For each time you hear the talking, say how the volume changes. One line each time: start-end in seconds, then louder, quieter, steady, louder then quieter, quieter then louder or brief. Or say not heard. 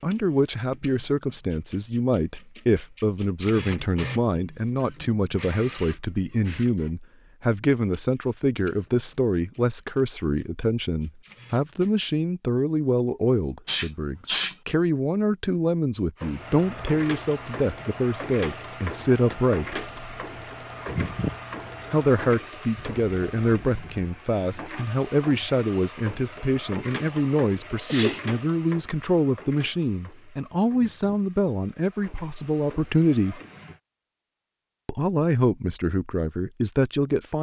0.0-19.8 steady
21.9-33.4 steady
34.9-37.3 brief.